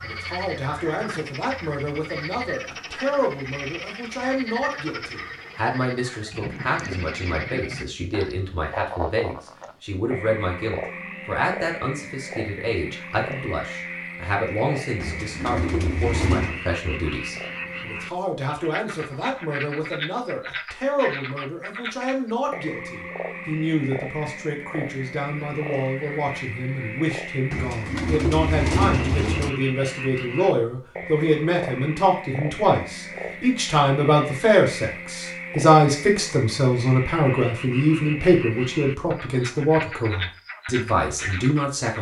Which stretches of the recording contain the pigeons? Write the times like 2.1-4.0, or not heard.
15.0-16.6, 27.5-29.5.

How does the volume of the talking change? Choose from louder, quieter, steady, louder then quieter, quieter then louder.
louder.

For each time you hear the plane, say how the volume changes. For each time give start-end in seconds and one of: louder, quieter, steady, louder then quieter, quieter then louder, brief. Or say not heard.
not heard.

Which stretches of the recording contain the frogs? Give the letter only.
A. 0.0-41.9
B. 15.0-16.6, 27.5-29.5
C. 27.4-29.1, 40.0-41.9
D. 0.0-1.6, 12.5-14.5
A.